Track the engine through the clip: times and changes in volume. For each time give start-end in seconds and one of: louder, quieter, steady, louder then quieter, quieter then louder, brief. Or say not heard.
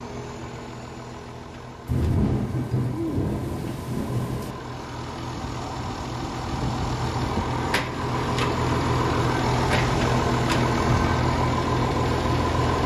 0.0-12.8 louder.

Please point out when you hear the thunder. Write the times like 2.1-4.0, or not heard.
1.9-4.5.